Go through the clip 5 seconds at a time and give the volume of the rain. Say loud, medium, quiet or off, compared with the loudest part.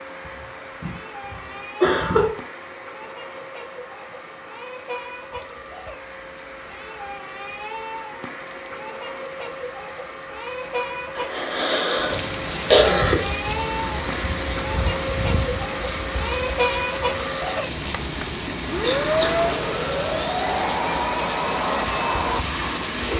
quiet, quiet, loud, loud, loud.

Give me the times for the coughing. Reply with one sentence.
You can hear the coughing from 0.8 to 2.2 s, from 11.2 to 13.2 s and from 18.8 to 19.4 s.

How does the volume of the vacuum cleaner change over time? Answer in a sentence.
The volume of the vacuum cleaner goes up.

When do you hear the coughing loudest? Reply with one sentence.
The volume of the coughing peaks at 13 seconds.